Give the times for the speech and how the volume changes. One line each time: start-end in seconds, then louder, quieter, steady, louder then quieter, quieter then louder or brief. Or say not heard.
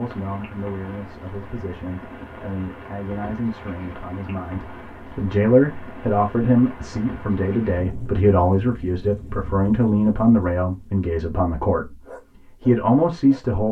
0.0-13.6 louder.